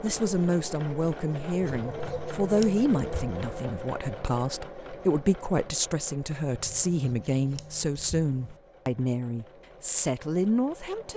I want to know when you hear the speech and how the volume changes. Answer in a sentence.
You can hear the speech from 0.0 to 11.1 s, at a steady volume.